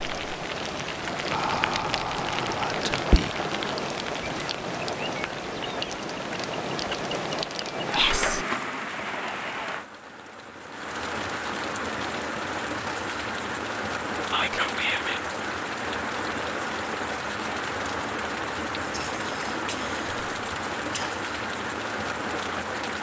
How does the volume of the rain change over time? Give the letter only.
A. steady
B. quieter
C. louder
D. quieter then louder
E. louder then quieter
A.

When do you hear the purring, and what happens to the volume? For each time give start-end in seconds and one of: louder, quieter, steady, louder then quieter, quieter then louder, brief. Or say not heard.
not heard.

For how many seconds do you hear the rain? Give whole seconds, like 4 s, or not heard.
23 s.